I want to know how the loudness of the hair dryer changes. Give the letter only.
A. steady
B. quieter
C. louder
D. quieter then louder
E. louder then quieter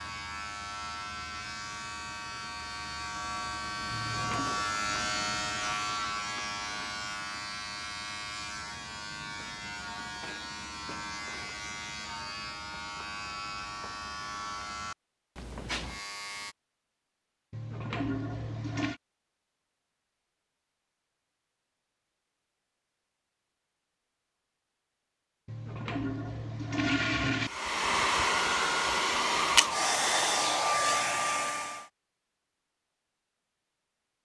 A.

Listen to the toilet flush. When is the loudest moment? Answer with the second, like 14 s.
27 s.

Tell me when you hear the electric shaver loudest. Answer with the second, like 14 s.
5 s.